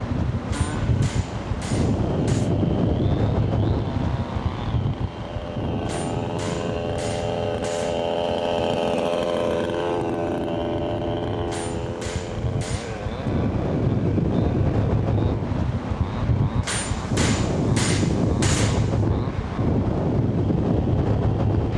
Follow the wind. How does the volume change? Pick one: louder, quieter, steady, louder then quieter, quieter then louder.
quieter then louder.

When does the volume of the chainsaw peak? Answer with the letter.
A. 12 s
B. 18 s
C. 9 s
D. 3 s
C.